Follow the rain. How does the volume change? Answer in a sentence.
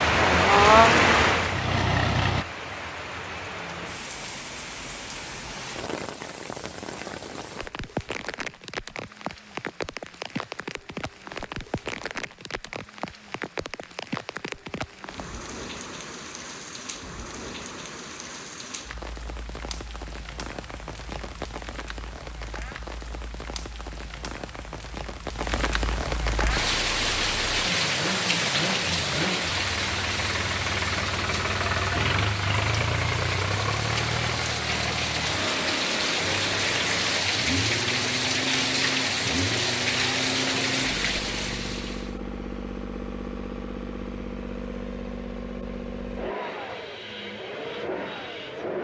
The loudness of the rain goes down, then up.